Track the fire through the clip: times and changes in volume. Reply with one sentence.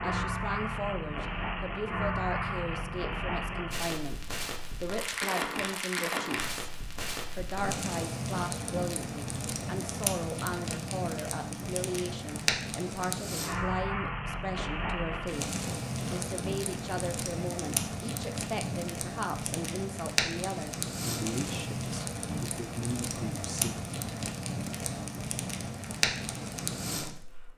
You can hear the fire from 0.0 to 27.5 s, at a steady volume.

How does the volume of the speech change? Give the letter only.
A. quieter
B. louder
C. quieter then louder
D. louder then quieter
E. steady
E.